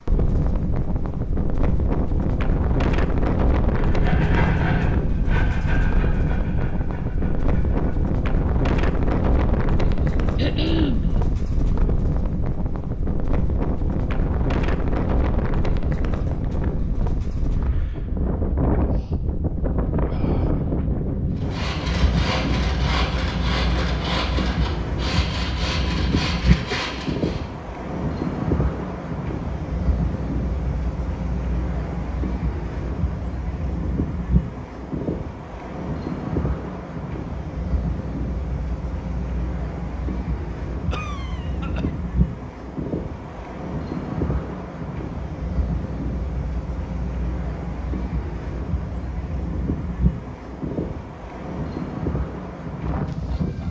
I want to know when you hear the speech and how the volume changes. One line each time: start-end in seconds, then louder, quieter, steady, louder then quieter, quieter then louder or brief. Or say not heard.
not heard.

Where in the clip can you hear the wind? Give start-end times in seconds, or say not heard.
0.1-53.6.